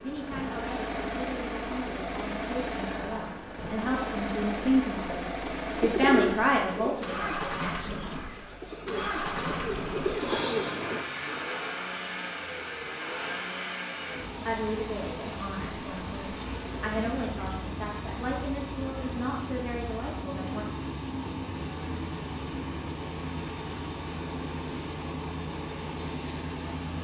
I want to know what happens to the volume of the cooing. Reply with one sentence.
The volume of the cooing goes down, then up.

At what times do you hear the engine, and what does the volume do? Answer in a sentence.
You can hear the engine from 0.0 to 26.9 s, at a steady volume.